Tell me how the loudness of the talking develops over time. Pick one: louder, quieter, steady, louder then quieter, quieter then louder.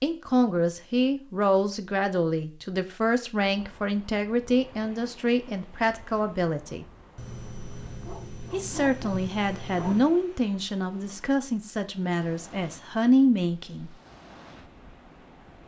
steady.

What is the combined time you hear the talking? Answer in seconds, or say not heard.
12 s.